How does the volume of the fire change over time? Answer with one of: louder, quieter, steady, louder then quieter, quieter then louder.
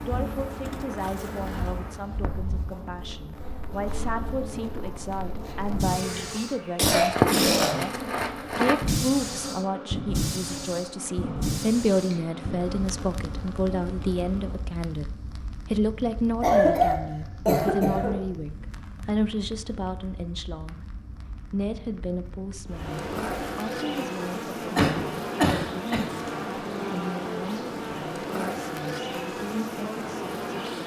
louder then quieter.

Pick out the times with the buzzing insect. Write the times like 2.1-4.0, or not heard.
0.0-14.7, 22.6-30.8.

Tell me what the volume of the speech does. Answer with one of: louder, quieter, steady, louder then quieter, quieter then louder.
louder then quieter.